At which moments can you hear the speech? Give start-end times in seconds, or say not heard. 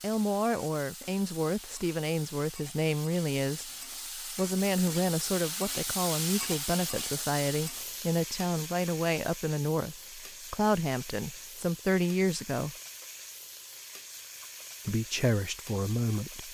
0.0-12.8, 14.8-16.4.